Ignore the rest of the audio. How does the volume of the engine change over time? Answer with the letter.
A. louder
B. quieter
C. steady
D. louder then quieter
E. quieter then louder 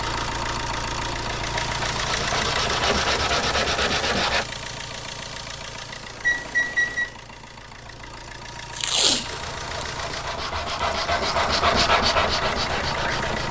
E.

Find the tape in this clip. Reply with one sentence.
You can hear the tape from 8.7 to 9.8 s.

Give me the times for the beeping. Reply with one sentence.
You can hear the beeping from 6.2 to 7.1 s.